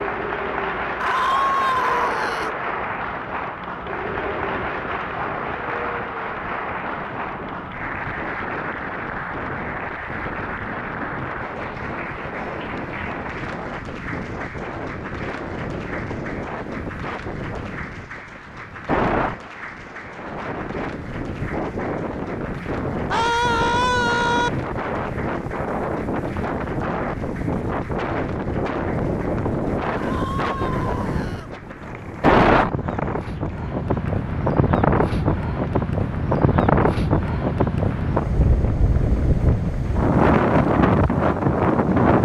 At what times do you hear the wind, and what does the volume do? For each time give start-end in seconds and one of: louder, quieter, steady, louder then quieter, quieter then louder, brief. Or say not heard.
0.0-42.1 louder.